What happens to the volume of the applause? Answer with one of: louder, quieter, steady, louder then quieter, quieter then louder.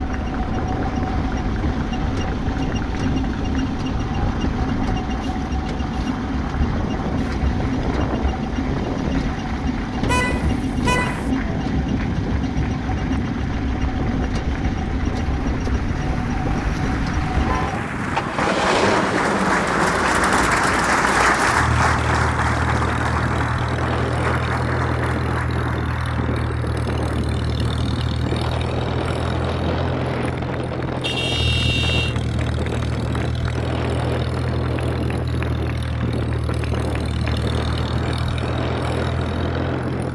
louder then quieter.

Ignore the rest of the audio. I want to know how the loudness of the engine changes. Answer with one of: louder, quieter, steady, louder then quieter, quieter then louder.
steady.